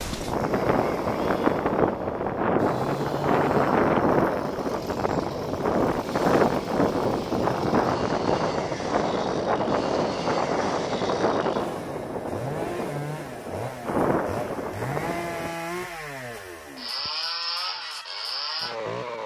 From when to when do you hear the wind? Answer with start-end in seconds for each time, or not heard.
0.0-15.6.